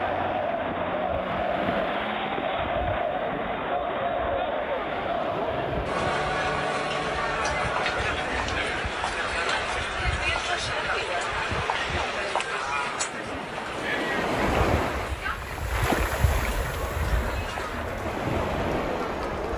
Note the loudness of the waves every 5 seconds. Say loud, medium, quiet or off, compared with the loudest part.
medium, medium, loud, loud.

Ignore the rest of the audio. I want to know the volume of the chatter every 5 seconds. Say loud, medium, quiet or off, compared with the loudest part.
loud, loud, loud, medium.